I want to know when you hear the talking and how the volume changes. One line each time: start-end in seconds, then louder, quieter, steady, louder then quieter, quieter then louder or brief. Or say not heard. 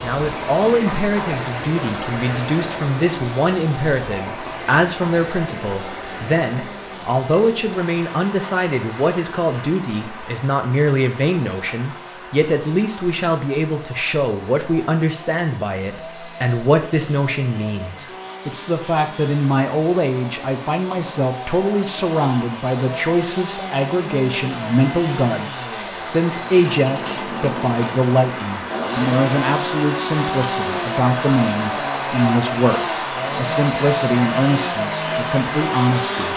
0.0-36.3 steady.